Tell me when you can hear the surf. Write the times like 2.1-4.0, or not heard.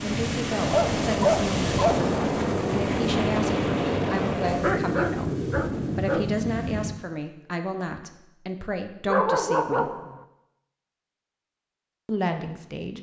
0.0-7.0.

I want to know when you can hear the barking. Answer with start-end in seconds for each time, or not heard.
0.7-2.0, 4.6-6.2, 9.1-10.2.